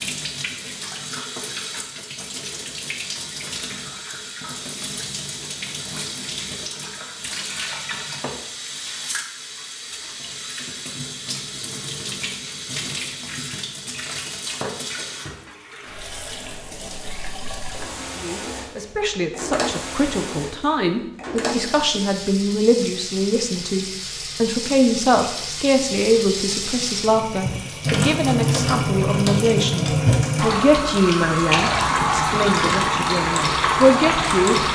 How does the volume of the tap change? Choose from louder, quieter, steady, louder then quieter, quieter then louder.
louder.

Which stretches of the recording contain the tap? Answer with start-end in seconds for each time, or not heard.
0.0-34.7.